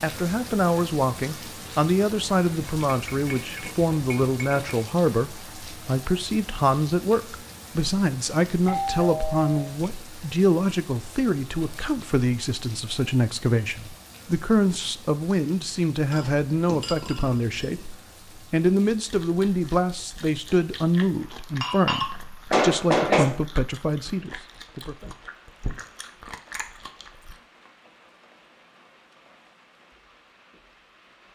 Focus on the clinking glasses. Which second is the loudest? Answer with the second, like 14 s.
23 s.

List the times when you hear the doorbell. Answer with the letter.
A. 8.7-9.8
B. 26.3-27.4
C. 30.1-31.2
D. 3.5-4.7
A.